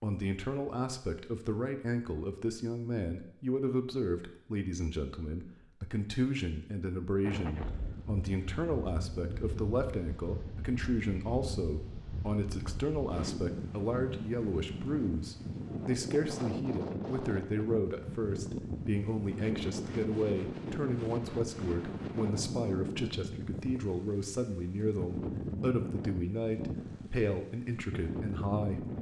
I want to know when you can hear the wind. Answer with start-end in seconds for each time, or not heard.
7.2-28.9.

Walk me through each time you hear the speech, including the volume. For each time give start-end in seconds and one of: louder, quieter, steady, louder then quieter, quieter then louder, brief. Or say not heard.
0.0-28.9 steady.